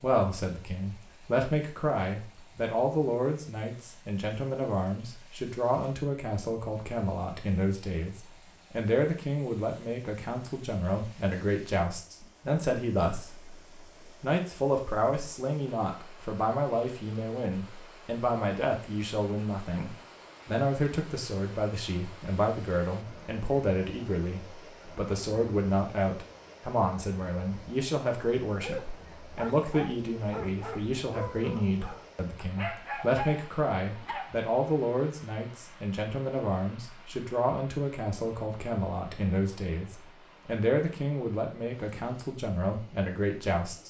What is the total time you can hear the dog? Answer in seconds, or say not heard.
6 s.